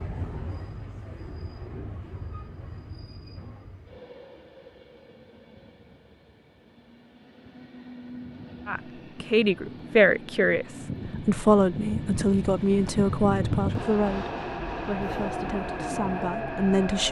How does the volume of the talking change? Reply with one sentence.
The loudness of the talking goes down.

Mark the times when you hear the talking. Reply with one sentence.
The talking can be heard from 8.7 to 17.0 s.